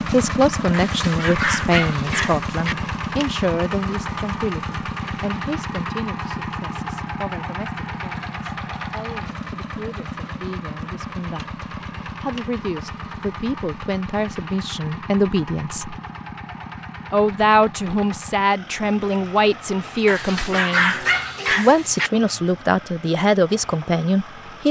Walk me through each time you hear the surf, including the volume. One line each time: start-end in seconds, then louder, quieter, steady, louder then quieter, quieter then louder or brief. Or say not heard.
not heard.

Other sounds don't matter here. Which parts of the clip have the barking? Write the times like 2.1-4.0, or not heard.
0.7-2.8, 20.1-22.1.